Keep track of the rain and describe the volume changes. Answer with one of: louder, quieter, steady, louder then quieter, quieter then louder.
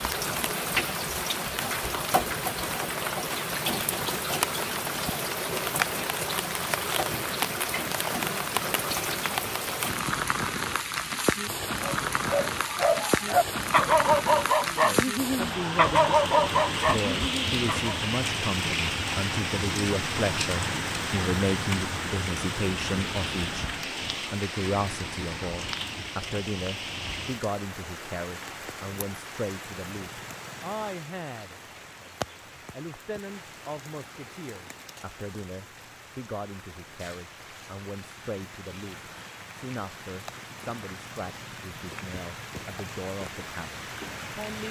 quieter.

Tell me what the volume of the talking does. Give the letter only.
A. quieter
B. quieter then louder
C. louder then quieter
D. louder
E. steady
A.